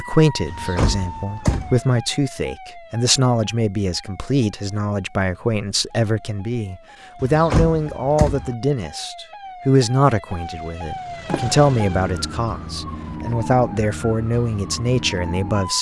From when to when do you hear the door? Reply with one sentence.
The door can be heard from 0.5 to 1.8 s, from 7.2 to 8.6 s and from 11.2 to 12.4 s.